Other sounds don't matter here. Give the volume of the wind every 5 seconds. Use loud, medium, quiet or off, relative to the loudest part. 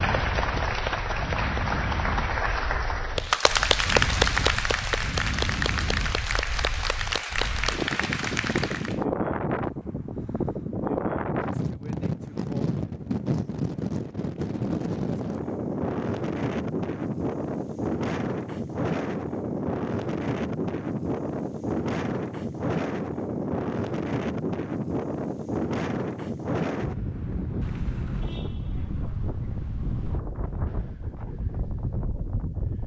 medium, loud, loud, loud, loud, loud, medium.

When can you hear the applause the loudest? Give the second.
4 s.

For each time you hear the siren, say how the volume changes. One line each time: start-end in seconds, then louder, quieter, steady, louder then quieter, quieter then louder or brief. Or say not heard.
not heard.